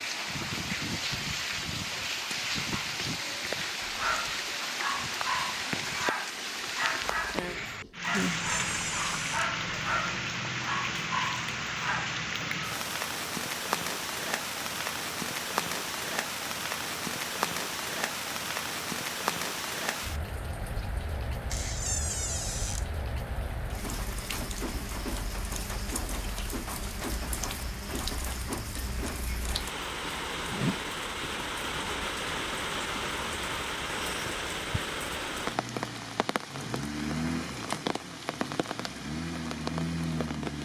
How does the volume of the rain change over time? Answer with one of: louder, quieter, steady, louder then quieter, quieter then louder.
steady.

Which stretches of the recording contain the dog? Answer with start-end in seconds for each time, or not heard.
3.8-12.2.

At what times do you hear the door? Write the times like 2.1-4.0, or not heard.
8.1-9.5, 21.5-22.9.